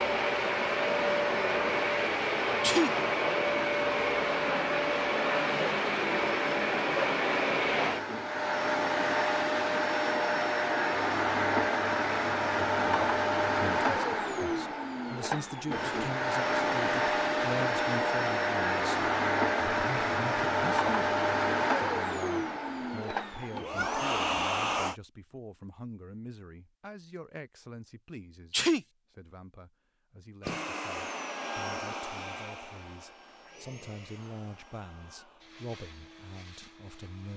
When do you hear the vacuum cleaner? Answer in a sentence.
You can hear the vacuum cleaner from 0.0 to 24.9 s and from 30.4 to 37.3 s.